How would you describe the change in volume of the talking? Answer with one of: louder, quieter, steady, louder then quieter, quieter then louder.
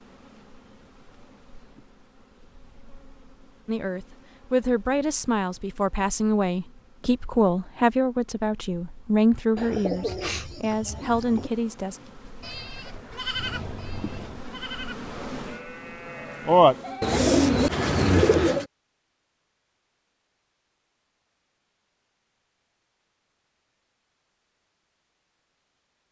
steady.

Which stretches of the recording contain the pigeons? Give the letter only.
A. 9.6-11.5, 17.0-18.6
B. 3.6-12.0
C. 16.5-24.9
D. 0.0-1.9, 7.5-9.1
A.